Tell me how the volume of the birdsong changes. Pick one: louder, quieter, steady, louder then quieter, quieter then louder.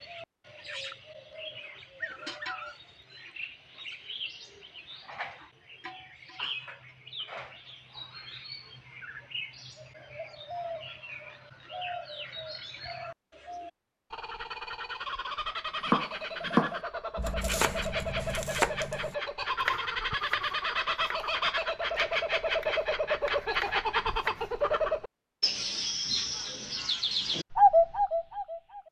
louder.